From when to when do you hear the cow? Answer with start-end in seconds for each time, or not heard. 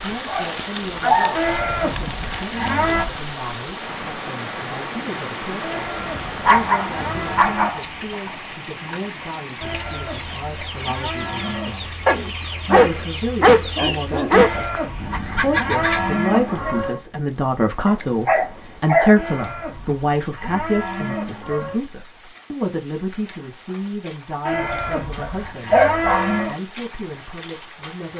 1.3-3.0, 5.6-7.7, 9.6-11.8, 14.3-17.0, 19.1-21.8, 24.4-26.6.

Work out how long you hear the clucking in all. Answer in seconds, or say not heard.
7 s.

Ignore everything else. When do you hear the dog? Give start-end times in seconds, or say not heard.
0.2-1.4, 6.5-7.8, 12.1-14.6, 17.9-19.1, 25.2-26.4.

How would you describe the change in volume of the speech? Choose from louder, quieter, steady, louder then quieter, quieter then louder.
louder then quieter.